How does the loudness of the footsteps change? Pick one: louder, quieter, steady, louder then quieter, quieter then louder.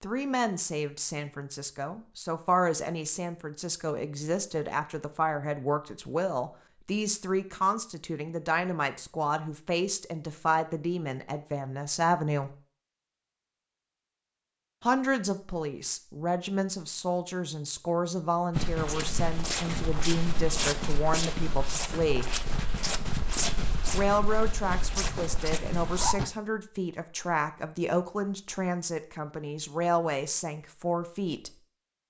steady.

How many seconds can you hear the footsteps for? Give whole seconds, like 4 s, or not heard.
8 s.